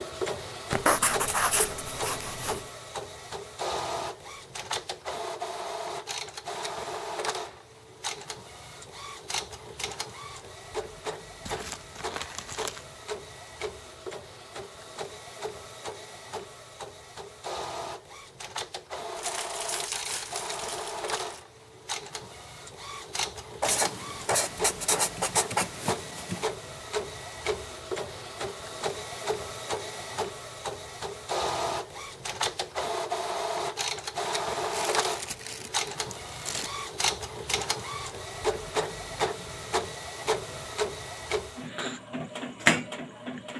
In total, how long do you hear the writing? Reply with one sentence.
The writing can be heard for 5 seconds in total.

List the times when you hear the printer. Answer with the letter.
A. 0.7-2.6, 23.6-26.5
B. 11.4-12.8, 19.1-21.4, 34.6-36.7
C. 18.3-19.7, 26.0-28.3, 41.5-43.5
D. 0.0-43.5
D.